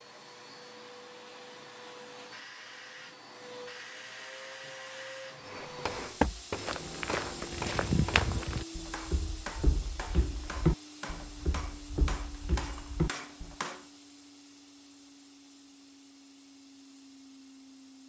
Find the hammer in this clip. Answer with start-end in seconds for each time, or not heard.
5.4-13.8.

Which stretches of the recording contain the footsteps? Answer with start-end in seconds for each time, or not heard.
6.0-13.6.